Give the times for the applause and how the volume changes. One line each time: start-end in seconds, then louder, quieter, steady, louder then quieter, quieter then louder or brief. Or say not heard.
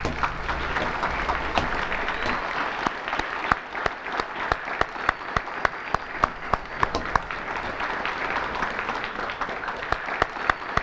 0.0-10.7 steady.